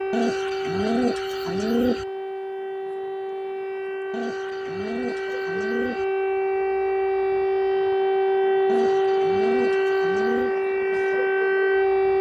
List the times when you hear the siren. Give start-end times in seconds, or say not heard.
0.0-12.1.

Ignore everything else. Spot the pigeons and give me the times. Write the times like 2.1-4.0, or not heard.
0.1-2.0, 4.1-6.0, 8.7-10.6.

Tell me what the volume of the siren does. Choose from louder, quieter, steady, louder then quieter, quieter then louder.
louder.